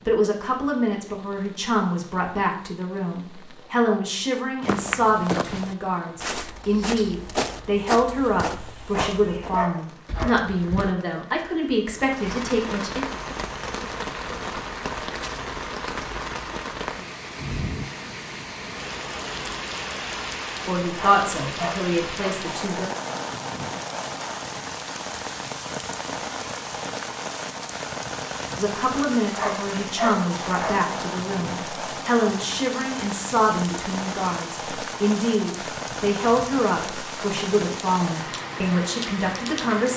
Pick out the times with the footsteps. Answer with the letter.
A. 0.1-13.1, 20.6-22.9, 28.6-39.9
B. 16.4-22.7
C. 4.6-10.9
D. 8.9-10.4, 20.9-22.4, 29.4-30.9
C.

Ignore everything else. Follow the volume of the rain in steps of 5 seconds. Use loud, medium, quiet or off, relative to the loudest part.
quiet, quiet, loud, loud, loud, loud, loud, loud.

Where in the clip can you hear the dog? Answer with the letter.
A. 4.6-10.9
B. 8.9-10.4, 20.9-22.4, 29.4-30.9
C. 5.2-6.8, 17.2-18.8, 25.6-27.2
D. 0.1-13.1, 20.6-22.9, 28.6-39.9
B.